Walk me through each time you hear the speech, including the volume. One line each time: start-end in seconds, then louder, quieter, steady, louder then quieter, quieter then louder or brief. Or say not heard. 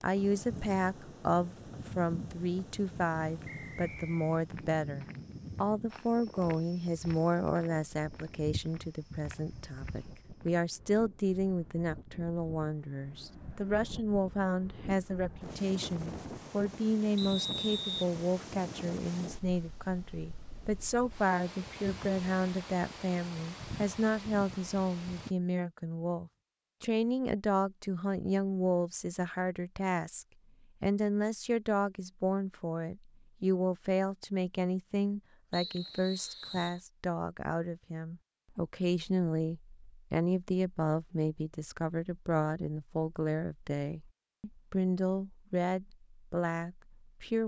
0.0-47.4 steady.